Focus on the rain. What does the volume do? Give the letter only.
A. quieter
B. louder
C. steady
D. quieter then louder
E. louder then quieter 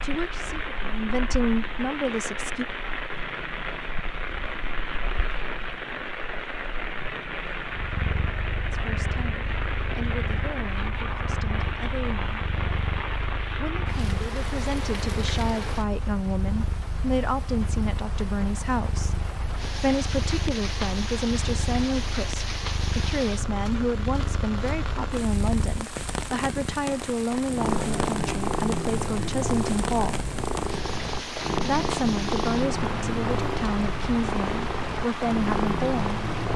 C.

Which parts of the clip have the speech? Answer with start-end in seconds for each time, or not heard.
0.0-2.6, 8.7-12.3, 13.6-19.1, 19.8-30.2, 31.6-36.1.